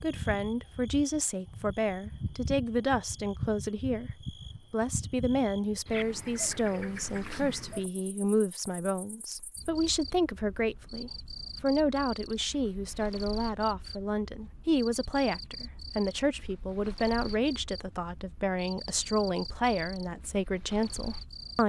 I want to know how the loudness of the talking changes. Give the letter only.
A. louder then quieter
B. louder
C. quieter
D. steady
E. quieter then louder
D.